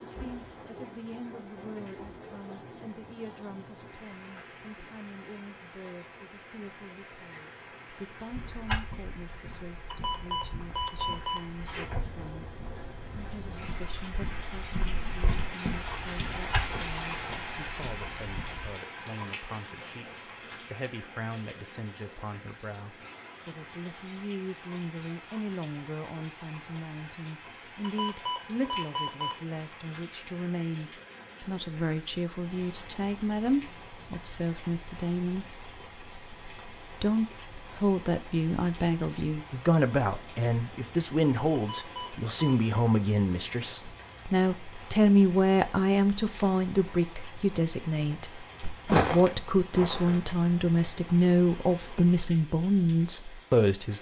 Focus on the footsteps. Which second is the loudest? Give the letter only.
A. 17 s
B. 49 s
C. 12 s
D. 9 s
B.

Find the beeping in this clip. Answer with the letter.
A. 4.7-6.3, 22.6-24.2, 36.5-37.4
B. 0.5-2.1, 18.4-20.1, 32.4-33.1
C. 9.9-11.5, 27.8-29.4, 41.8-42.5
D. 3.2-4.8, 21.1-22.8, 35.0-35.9
C.